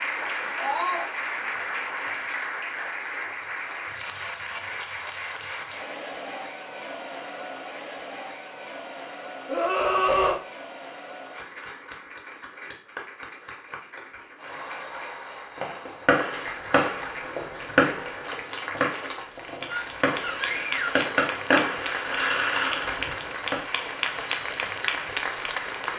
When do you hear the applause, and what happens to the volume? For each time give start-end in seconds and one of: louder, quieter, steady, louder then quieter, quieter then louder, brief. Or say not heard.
0.0-25.9 quieter then louder.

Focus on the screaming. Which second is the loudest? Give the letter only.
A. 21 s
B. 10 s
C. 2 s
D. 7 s
B.